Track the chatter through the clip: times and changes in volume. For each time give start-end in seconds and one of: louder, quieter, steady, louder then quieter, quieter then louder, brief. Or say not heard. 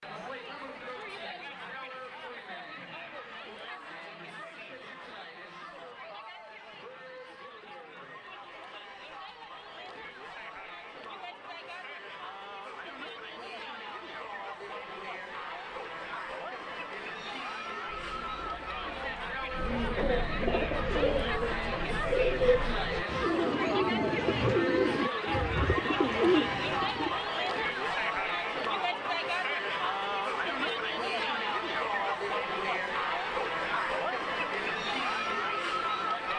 0.0-36.3 louder.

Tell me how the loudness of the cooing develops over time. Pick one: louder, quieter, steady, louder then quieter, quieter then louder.
louder.